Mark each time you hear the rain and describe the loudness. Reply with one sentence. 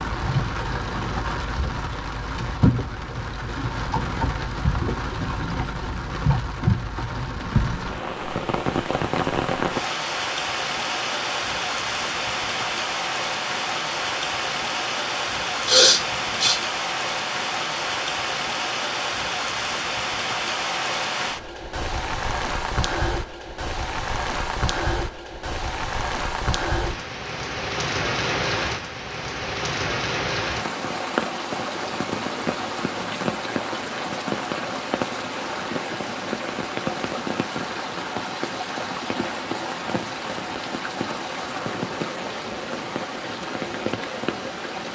You can hear the rain from 0.0 to 44.9 s, at a steady volume.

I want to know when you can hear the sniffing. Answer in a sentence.
You can hear the sniffing from 15.7 to 16.6 s.